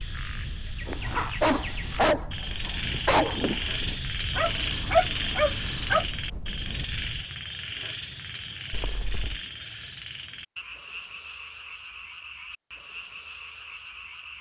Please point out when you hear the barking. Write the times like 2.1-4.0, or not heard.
0.8-6.0.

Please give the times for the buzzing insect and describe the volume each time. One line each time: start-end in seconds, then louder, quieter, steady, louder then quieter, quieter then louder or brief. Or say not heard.
not heard.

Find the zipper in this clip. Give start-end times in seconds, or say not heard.
1.1-1.6, 8.7-9.4.